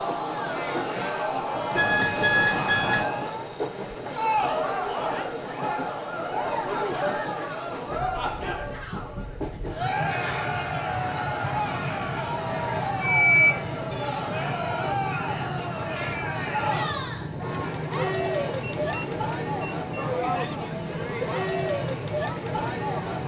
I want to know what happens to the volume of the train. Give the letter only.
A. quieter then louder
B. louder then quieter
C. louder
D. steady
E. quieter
D.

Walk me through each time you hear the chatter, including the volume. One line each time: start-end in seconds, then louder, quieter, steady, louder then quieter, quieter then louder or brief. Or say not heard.
0.0-23.2 steady.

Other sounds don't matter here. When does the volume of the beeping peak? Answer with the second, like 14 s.
13 s.